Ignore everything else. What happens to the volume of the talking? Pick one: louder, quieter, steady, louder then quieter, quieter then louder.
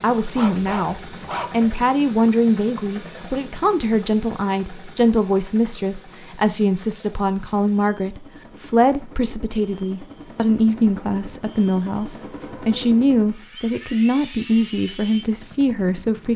steady.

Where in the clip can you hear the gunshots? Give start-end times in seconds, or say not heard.
not heard.